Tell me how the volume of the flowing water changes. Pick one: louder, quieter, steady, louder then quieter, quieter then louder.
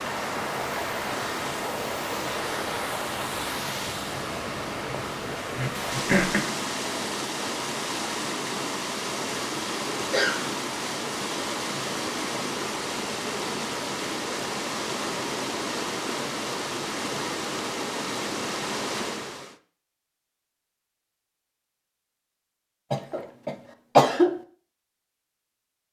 steady.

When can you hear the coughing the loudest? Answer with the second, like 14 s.
24 s.